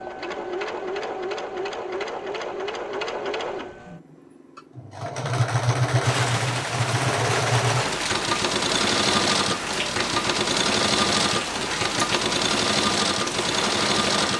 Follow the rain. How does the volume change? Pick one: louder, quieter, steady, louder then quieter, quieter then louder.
steady.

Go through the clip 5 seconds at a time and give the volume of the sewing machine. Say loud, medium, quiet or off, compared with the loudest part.
medium, loud, loud.